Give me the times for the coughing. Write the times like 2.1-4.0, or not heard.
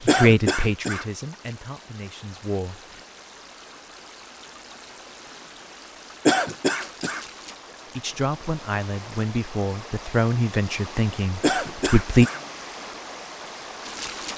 0.1-1.1, 6.2-7.2, 11.4-12.4.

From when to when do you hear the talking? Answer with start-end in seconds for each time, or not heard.
0.0-2.8, 8.0-12.3.